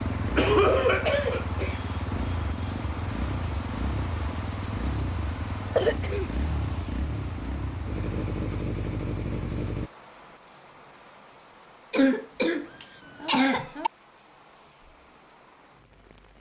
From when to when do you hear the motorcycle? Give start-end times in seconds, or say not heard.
0.0-9.9.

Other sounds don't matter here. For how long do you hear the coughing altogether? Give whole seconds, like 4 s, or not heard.
4 s.